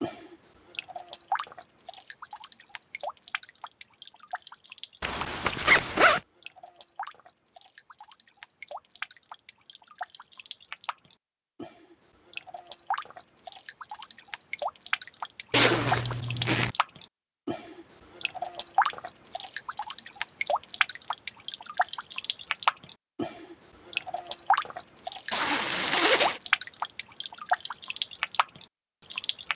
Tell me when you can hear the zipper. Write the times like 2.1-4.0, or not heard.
5.0-6.2, 15.5-16.8, 25.3-26.4.